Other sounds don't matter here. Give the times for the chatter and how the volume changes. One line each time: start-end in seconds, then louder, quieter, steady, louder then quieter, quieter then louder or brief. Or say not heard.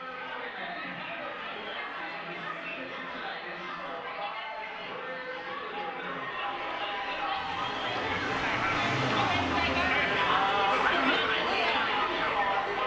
0.0-12.8 louder.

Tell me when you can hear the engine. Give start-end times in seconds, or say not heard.
7.3-12.8.